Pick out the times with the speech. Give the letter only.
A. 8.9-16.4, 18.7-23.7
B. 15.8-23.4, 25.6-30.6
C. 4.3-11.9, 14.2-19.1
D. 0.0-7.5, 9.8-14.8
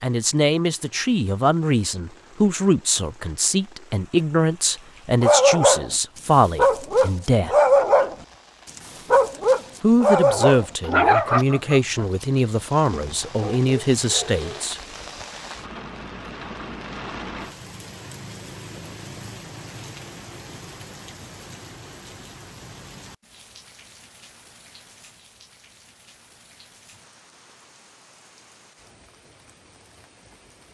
D.